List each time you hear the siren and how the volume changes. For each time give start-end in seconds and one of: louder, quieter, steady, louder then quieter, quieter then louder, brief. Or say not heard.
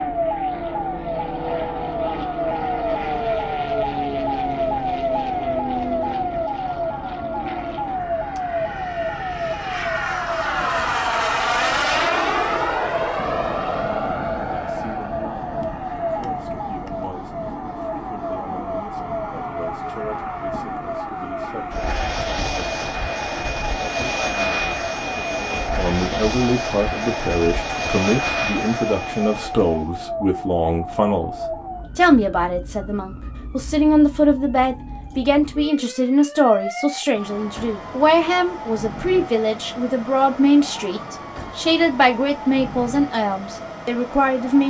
0.0-44.6 quieter.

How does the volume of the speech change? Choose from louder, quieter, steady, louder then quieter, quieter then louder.
louder.